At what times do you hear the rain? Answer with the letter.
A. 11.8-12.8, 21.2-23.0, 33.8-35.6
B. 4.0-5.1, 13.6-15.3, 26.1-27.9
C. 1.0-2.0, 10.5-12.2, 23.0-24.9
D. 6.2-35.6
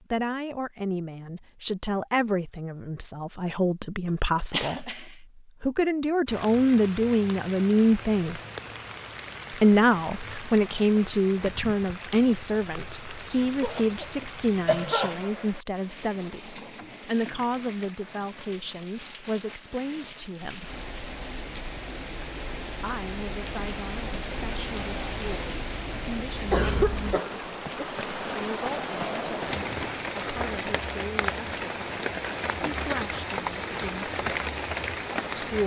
D.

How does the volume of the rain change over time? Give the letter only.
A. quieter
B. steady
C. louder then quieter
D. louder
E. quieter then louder
D.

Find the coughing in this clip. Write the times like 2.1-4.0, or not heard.
4.0-5.1, 13.6-15.3, 26.1-27.9.